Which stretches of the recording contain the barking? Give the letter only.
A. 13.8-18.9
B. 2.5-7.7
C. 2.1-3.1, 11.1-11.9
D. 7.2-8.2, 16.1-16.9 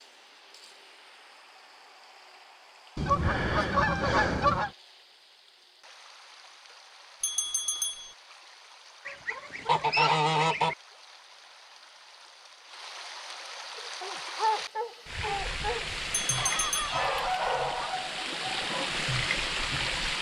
A.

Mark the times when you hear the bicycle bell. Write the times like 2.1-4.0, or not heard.
7.2-8.2, 16.1-16.9.